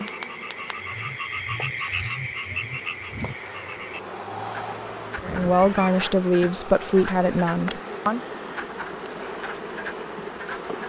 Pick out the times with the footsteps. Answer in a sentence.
The footsteps can't be heard in this clip.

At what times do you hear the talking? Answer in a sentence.
You can hear the talking from 5.2 to 8.2 s.